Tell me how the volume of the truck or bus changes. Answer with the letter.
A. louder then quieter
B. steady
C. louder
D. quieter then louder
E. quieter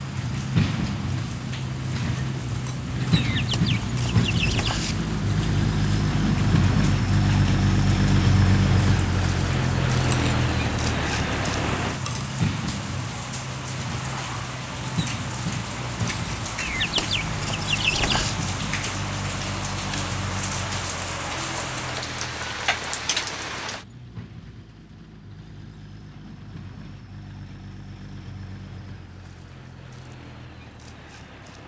E.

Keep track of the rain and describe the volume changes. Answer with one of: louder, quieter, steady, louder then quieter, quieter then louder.
louder.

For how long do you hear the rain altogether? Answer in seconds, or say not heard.
24 s.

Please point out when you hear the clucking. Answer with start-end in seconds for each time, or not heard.
3.1-5.0, 16.6-18.4.